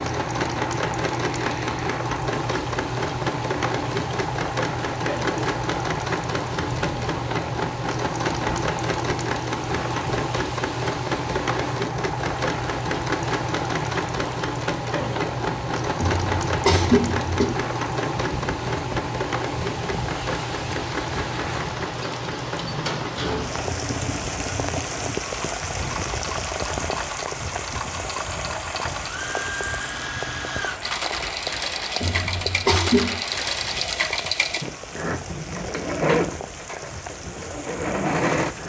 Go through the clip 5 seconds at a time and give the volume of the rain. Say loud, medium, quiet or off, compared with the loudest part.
medium, medium, medium, medium, loud, loud, medium, medium.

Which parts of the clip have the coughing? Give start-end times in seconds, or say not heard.
16.0-17.4, 32.0-33.1.